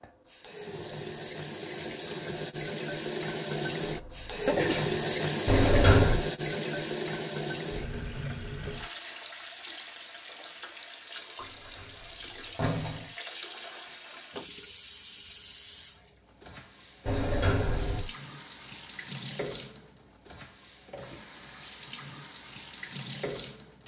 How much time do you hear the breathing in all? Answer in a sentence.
You can't hear the breathing here.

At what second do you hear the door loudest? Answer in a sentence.
The loudest moment of the door is at 6 seconds.